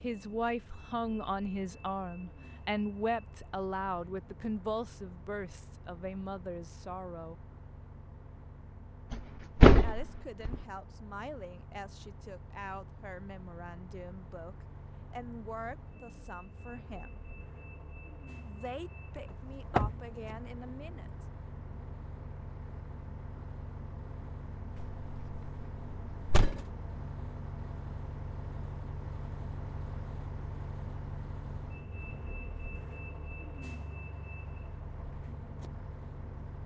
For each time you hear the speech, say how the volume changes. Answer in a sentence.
You can hear the speech from 0.0 to 7.5 s, getting quieter; from 9.8 to 17.2 s, at a steady volume; and briefly from 18.4 to 21.2 s.